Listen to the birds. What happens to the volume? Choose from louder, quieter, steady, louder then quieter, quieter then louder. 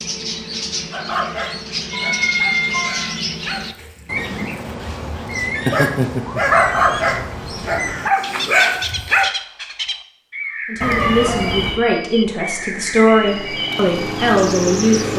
steady.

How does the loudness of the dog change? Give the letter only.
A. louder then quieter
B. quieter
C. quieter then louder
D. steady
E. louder
E.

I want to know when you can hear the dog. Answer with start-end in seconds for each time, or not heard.
0.9-9.3.